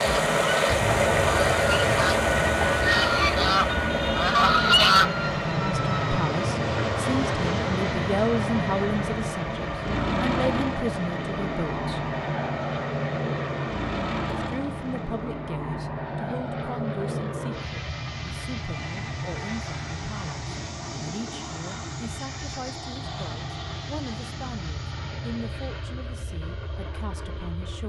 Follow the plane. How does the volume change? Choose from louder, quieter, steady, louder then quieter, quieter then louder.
quieter.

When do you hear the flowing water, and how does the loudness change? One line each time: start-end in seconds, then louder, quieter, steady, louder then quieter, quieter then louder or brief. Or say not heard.
0.0-15.2 quieter.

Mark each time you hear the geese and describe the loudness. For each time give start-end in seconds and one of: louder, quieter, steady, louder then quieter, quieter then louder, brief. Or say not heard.
0.0-5.2 louder.